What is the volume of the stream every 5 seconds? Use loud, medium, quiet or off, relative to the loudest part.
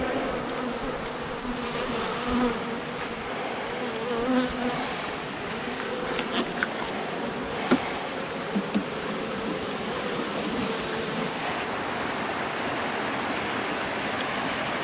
medium, medium, loud.